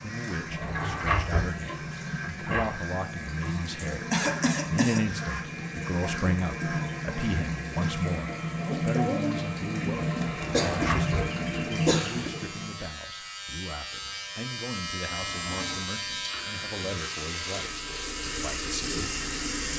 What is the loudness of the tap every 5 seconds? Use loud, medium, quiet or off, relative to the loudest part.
medium, loud, loud, medium.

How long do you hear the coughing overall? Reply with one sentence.
You can hear the coughing for 4 seconds altogether.